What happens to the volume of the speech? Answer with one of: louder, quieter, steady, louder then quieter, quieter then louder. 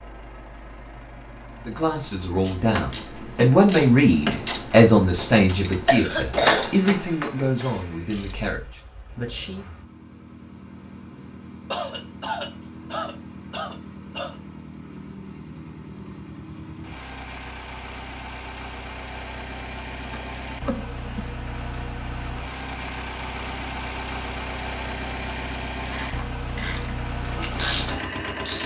louder then quieter.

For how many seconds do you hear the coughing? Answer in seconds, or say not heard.
5 s.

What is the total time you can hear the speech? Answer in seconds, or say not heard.
8 s.